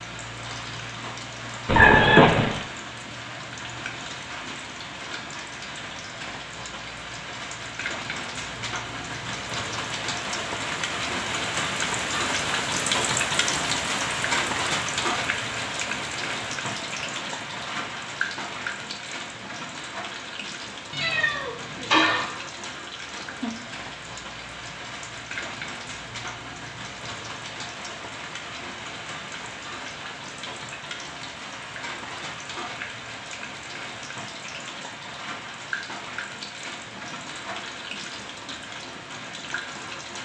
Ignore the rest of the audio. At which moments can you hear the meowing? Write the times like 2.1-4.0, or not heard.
1.6-2.6, 20.9-22.2.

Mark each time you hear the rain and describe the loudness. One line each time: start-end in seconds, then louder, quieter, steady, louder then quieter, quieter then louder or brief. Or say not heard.
0.0-40.2 louder then quieter.